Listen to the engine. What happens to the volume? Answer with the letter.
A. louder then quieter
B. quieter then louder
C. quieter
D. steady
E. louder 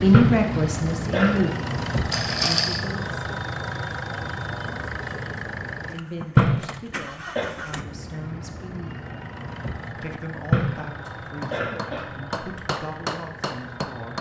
C.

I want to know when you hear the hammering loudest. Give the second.
13 s.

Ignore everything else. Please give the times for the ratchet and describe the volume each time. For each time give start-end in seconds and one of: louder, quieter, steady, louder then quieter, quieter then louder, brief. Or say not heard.
not heard.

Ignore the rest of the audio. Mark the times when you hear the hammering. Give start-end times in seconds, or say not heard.
11.1-14.1.